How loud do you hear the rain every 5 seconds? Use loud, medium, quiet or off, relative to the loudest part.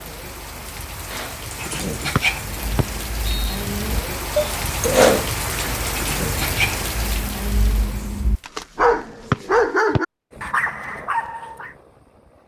loud, loud, off.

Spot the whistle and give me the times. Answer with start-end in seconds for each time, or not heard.
2.1-3.6, 9.3-10.0.